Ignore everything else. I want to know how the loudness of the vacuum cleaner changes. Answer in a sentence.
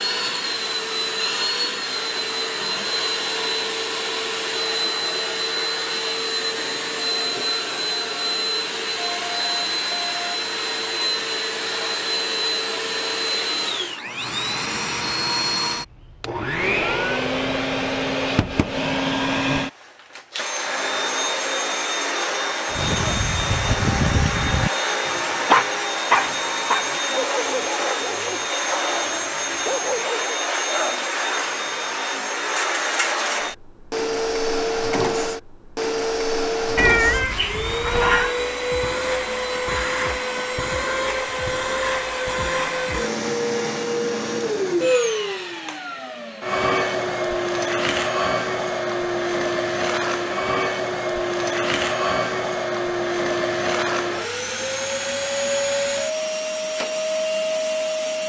The loudness of the vacuum cleaner stays about the same.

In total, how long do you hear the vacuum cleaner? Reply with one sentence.
You can hear the vacuum cleaner for 58 seconds altogether.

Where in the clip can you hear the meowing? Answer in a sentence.
You can hear the meowing from 36.8 to 38.4 s.